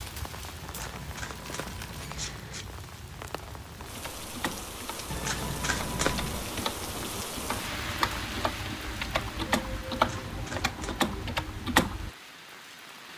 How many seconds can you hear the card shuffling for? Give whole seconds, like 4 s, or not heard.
5 s.